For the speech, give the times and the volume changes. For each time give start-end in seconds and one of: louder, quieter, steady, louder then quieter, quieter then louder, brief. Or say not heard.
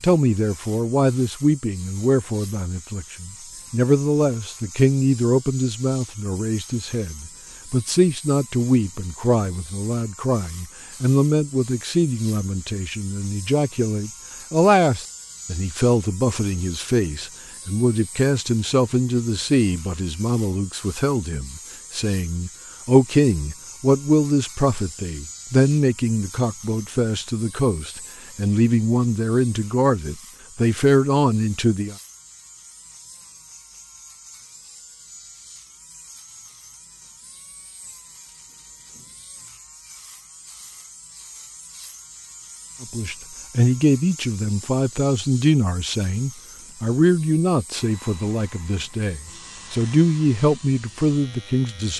0.0-31.9 steady
42.8-51.9 quieter then louder.